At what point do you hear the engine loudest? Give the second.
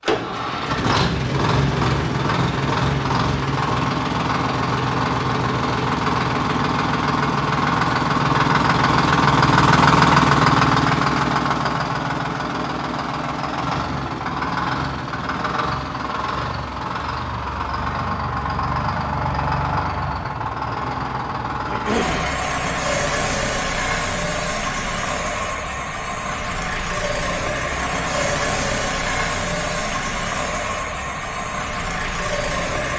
10 s.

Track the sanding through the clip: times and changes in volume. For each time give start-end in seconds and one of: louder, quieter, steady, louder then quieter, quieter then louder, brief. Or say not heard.
not heard.